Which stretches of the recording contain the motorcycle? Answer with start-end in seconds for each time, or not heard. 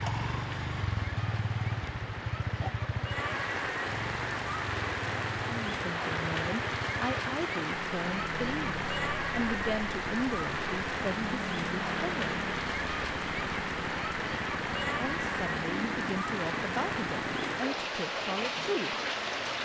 0.0-17.6.